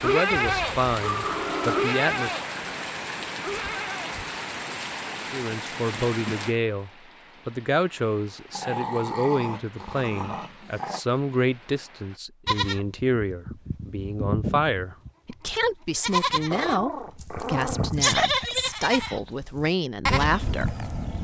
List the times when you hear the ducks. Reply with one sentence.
The ducks can't be heard in this clip.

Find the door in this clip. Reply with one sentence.
The door can't be heard in this clip.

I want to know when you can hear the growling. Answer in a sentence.
The growling can be heard from 1.0 to 2.0 s, from 8.5 to 11.0 s and from 16.5 to 18.0 s.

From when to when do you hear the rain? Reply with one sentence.
The rain can be heard from 0.0 to 12.2 s.